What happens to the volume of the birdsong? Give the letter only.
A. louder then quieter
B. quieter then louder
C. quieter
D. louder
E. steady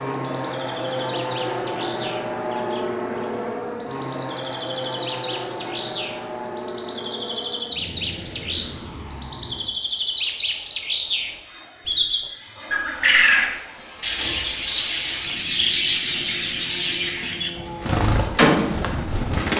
D.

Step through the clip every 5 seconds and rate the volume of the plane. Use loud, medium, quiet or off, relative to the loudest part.
loud, medium, quiet, quiet.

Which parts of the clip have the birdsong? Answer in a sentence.
You can hear the birdsong from 0.0 to 19.5 s.